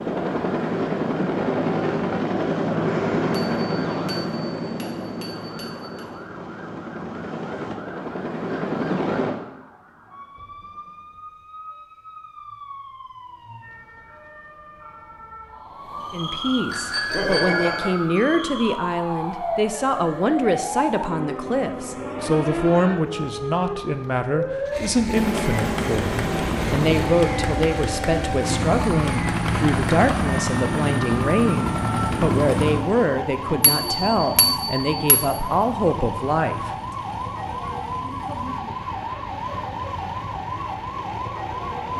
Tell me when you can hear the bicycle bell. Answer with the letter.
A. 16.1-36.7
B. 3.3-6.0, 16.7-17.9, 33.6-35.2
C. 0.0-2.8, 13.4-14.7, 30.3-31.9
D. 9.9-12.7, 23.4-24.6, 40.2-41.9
B.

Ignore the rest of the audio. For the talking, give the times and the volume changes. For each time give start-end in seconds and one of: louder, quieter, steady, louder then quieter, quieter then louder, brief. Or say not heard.
16.1-36.7 steady.